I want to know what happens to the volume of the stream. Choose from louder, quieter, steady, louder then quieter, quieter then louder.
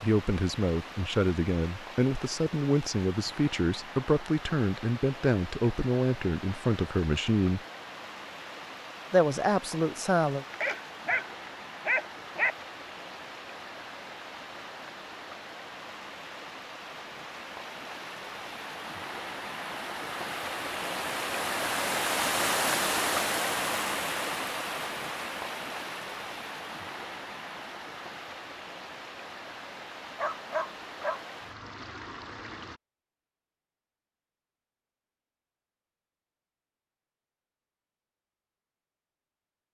louder then quieter.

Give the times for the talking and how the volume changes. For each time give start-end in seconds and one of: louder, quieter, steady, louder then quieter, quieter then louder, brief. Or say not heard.
0.0-7.6 steady
9.1-10.4 brief.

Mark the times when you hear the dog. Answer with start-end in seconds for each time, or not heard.
10.5-12.6, 30.1-31.2.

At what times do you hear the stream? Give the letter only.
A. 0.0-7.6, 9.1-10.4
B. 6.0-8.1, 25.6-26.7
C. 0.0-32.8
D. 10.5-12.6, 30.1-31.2
C.